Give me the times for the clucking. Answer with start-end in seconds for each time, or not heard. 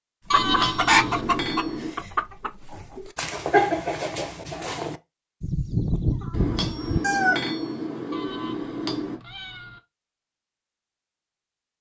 0.3-7.5.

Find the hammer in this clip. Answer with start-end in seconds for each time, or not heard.
0.3-1.9, 6.3-9.2.